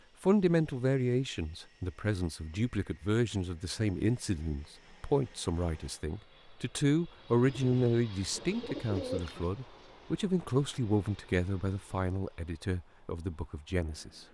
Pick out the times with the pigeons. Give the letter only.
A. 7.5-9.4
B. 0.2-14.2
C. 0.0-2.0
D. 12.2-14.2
A.